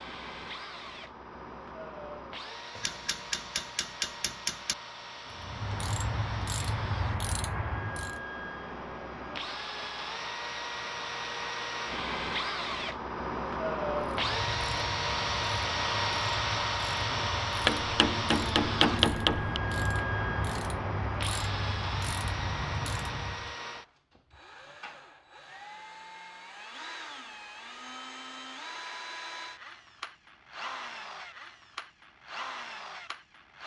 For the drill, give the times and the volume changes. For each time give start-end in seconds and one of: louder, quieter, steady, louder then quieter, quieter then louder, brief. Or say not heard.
0.0-33.6 louder then quieter.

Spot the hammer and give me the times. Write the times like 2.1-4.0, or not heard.
2.8-4.8, 17.6-19.6.